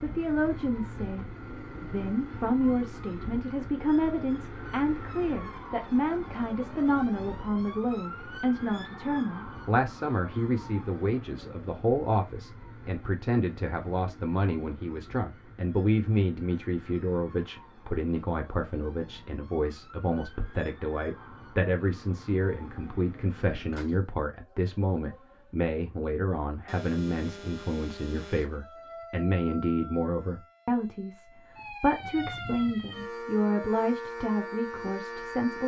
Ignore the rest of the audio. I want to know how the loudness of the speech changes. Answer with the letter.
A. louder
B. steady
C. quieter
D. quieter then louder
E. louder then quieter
B.